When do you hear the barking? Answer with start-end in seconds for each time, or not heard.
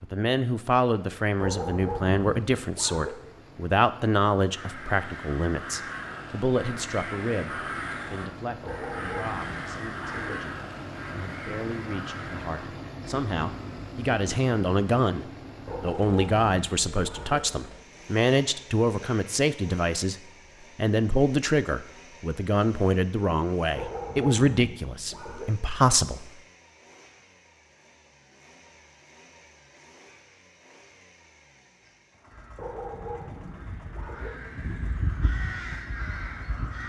1.4-3.1, 8.6-10.3, 15.7-17.4, 23.8-25.4, 32.5-34.3.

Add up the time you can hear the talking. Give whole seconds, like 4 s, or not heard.
26 s.